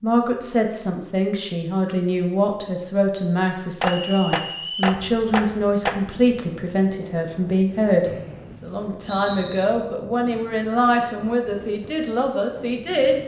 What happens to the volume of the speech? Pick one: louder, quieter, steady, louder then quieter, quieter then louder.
steady.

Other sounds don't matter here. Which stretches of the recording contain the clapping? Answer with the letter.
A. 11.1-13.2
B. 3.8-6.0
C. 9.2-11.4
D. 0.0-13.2
B.